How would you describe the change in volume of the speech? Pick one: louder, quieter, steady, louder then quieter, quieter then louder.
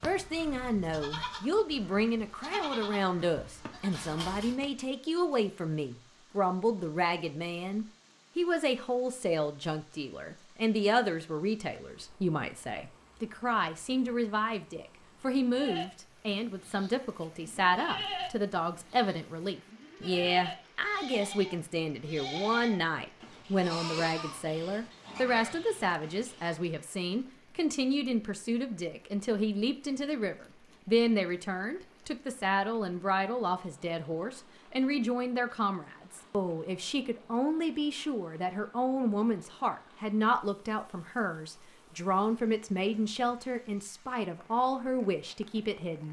steady.